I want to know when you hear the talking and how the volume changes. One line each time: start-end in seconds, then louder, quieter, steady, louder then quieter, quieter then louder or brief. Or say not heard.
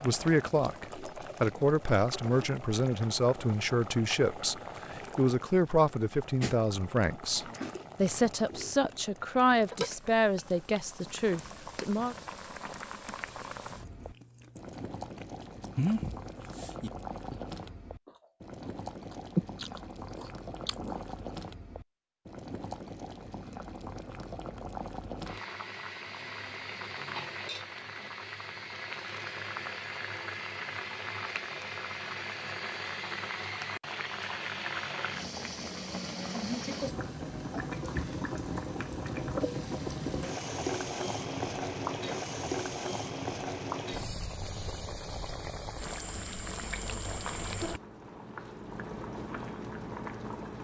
0.0-12.2 steady.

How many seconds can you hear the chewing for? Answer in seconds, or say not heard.
7 s.